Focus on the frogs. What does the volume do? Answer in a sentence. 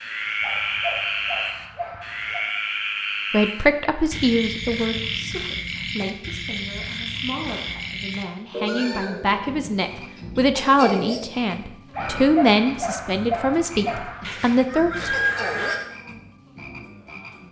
The volume of the frogs goes down.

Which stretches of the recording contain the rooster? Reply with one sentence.
The rooster can be heard from 14.2 to 15.8 s.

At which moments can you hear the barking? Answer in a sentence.
You can hear the barking from 0.4 to 2.5 s and from 11.9 to 14.3 s.